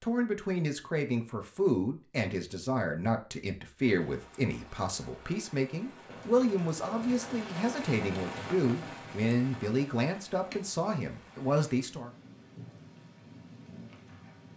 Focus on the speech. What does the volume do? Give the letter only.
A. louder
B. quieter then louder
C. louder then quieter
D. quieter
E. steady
E.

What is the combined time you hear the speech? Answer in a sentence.
You can hear the speech for 12 seconds altogether.